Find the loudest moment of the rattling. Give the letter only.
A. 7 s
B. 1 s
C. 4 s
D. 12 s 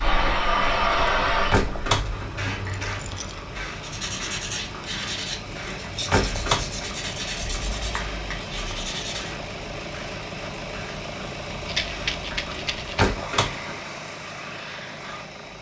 D.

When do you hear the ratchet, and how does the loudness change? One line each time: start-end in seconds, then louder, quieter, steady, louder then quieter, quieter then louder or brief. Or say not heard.
not heard.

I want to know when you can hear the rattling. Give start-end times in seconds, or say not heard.
2.6-3.4, 11.7-13.2.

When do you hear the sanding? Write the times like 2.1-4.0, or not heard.
3.8-9.3.